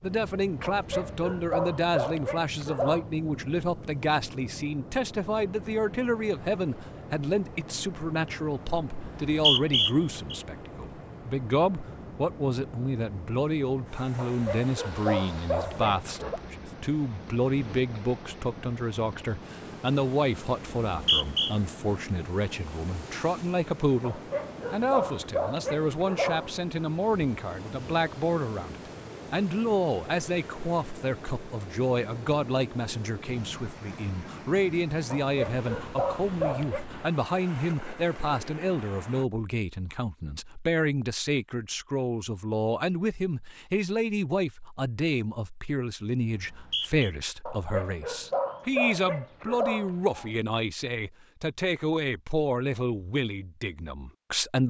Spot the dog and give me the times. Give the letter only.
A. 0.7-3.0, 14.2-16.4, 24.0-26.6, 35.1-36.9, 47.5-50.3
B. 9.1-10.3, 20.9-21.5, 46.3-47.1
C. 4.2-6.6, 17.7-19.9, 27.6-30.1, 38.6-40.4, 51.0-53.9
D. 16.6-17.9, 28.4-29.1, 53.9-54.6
A.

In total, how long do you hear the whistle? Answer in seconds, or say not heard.
3 s.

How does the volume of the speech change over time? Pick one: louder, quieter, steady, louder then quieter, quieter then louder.
steady.